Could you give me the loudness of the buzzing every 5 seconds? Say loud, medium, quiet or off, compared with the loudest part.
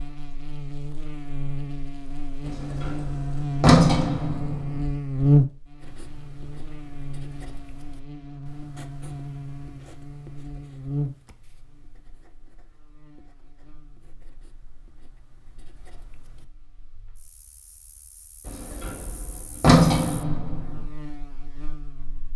medium, loud, medium, quiet, quiet.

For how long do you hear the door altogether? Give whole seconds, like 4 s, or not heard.
5 s.